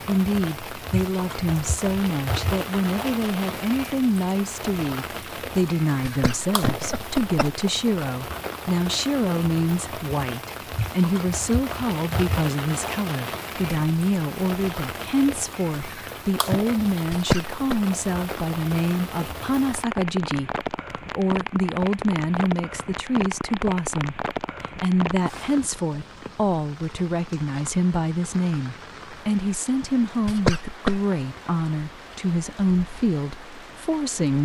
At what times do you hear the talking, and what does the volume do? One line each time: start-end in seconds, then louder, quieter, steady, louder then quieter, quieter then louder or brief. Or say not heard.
0.1-34.4 steady.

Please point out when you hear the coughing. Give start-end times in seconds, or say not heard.
6.0-7.7, 17.1-17.8, 30.2-31.0.